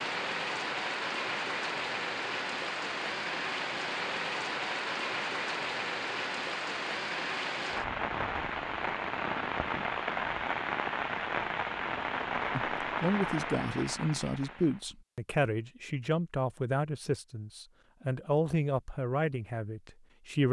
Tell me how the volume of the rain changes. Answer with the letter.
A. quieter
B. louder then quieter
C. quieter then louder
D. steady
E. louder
D.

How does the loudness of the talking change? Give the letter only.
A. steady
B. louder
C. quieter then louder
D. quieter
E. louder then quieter
A.